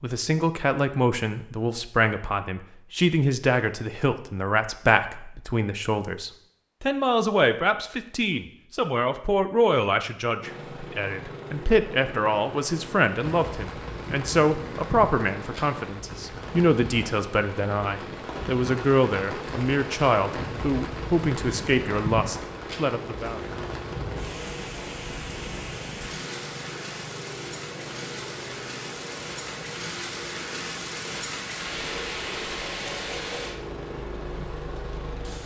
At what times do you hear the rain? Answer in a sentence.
You can hear the rain from 13.2 to 35.4 s.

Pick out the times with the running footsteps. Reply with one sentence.
The running footsteps can't be heard in this clip.